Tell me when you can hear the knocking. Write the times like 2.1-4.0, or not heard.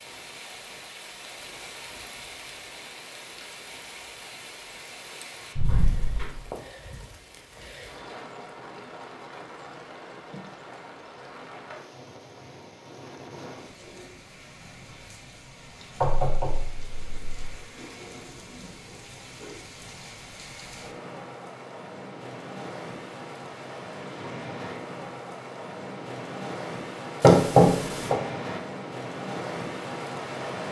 5.5-6.4, 16.0-17.6, 27.2-28.1.